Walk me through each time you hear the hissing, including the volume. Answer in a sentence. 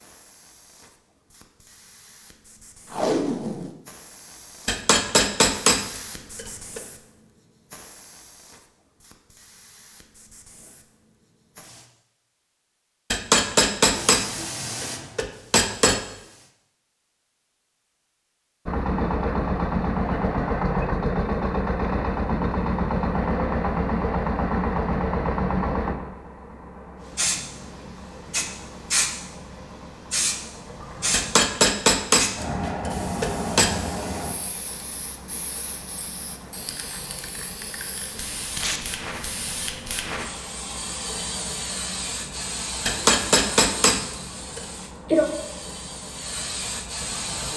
The hissing can be heard from 0.0 to 11.9 s, getting louder then quieter; briefly from 13.9 to 16.6 s; and from 27.1 to 47.5 s, getting quieter then louder.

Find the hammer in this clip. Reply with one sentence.
The hammer can be heard from 4.7 to 6.8 s, from 13.1 to 16.0 s, from 31.1 to 33.8 s and from 42.9 to 44.6 s.